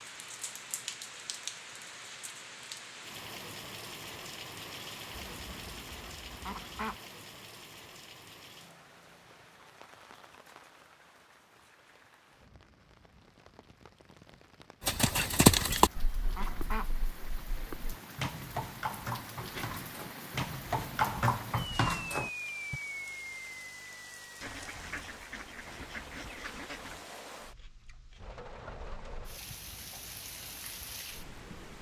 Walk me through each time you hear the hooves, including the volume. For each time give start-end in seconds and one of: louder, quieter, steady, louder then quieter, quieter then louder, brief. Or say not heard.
14.8-22.8 quieter then louder.